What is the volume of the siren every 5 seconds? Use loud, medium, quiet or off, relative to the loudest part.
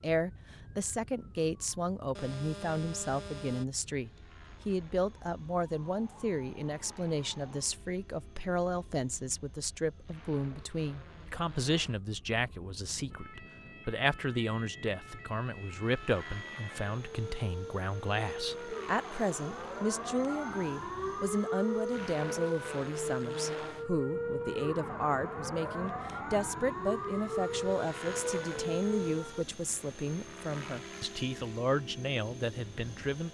quiet, quiet, quiet, medium, loud, loud, off.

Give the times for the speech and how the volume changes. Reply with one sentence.
You can hear the speech from 0.0 to 33.2 s, at a steady volume.